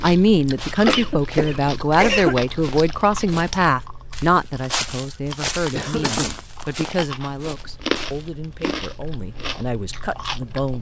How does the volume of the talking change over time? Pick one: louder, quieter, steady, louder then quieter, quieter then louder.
quieter.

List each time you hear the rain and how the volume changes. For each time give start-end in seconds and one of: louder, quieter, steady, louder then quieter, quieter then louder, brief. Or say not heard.
not heard.